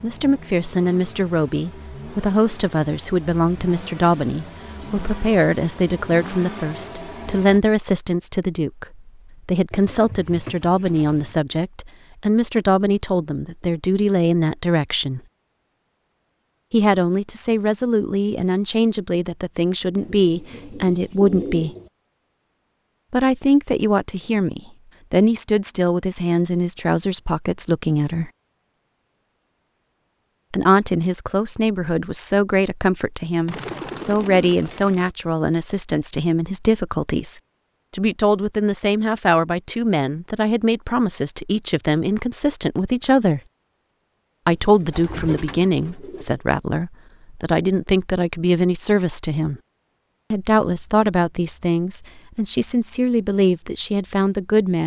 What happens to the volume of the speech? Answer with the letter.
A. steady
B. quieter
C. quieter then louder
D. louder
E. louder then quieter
A.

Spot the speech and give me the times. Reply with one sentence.
The speech can be heard from 0.0 to 15.2 s, from 16.7 to 21.8 s, from 23.1 to 28.3 s, from 30.5 to 43.4 s, from 44.5 to 49.6 s and from 50.3 to 54.8 s.